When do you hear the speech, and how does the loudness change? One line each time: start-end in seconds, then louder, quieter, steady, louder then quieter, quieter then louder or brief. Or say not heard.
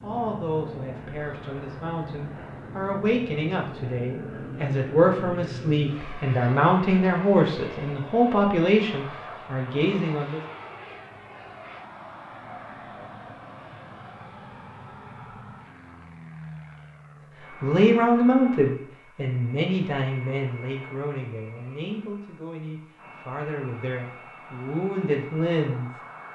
0.0-10.4 louder
17.6-25.9 quieter then louder.